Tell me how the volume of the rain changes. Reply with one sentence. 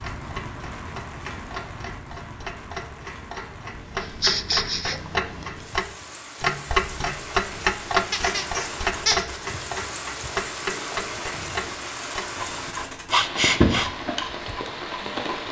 The loudness of the rain goes up.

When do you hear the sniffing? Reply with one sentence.
The sniffing can be heard from 4.0 to 5.0 s and from 12.3 to 13.9 s.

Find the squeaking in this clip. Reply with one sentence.
You can hear the squeaking from 8.1 to 9.2 s.